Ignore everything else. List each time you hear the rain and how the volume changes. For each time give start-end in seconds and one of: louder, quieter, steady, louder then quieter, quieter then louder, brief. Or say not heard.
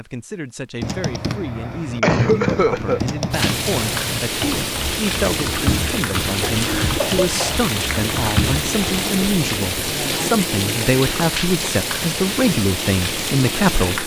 3.3-14.0 steady.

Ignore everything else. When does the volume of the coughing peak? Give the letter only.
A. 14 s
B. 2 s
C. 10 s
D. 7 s
B.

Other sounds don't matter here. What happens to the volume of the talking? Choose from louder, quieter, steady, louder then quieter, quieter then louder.
louder.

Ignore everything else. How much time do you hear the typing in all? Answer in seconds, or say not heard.
8 s.